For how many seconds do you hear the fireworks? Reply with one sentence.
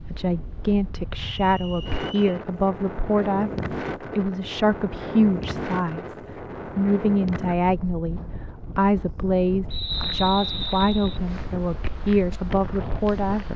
The fireworks can't be heard in this clip.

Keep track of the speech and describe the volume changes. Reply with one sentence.
The loudness of the speech stays about the same.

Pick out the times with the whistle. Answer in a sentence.
You can hear the whistle from 1.4 to 2.3 s and from 9.7 to 11.2 s.